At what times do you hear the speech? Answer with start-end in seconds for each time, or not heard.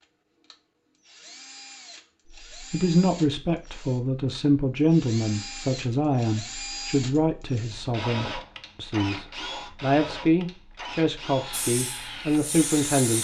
2.5-13.2.